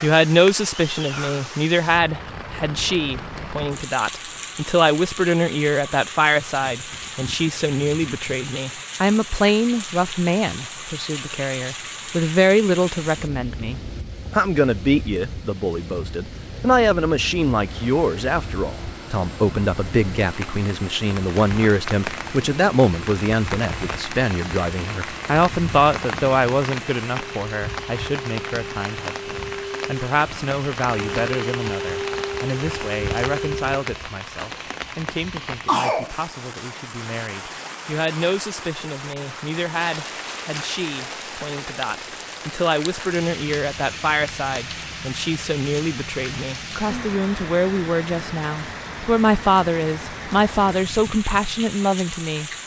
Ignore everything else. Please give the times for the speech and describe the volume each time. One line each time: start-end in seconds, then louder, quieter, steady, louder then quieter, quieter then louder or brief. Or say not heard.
0.0-52.5 quieter then louder.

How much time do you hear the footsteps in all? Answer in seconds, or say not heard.
not heard.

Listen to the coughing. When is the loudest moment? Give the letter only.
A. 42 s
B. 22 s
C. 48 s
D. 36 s
D.